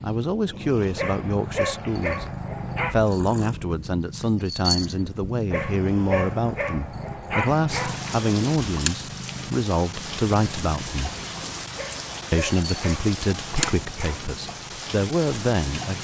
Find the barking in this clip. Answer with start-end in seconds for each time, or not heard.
0.9-3.0, 5.5-8.0, 11.8-14.2.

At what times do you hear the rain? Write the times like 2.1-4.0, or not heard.
7.7-15.9.